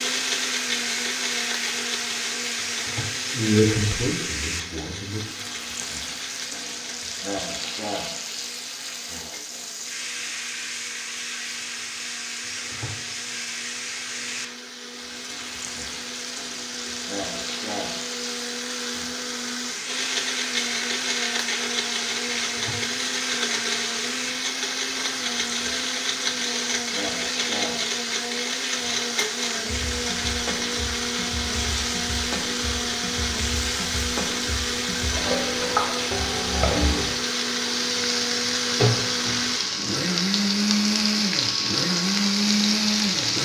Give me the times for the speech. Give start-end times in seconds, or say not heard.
3.3-5.3.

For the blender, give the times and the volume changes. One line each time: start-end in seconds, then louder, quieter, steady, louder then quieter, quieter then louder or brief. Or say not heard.
0.0-43.4 quieter then louder.